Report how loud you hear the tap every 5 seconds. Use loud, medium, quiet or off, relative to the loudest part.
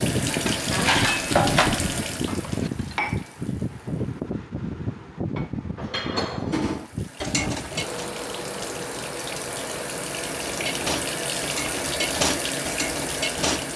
loud, medium, loud.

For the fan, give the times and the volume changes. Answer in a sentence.
You can hear the fan from 0.0 to 13.7 s, getting quieter.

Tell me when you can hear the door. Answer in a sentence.
The door can't be heard in this clip.